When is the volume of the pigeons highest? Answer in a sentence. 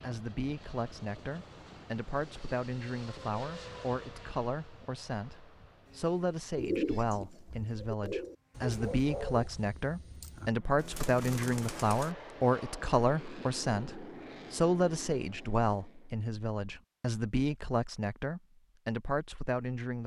The volume of the pigeons peaks at 7 seconds.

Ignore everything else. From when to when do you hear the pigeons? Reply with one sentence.
The pigeons can be heard from 6.5 to 12.2 s.